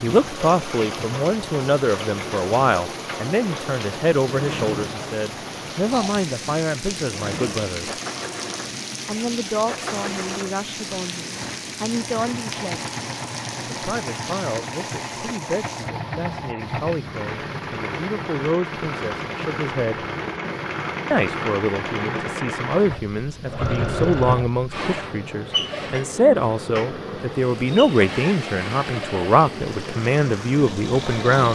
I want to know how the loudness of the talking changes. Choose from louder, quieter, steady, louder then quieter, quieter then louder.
quieter then louder.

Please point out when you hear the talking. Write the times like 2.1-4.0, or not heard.
0.0-8.0, 9.1-12.9, 13.7-20.1, 21.1-31.5.